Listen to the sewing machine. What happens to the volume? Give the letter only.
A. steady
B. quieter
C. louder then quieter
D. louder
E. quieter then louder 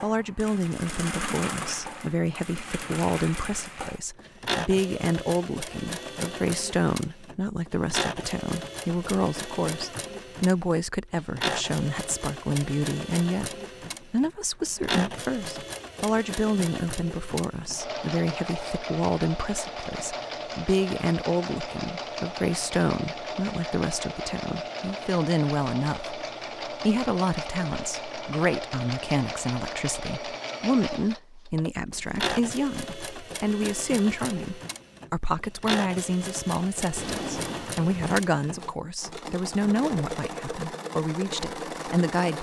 A.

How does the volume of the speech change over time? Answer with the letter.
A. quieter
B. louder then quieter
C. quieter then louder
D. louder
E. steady
E.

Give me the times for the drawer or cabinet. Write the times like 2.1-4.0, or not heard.
37.0-38.3.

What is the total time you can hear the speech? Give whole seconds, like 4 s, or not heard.
42 s.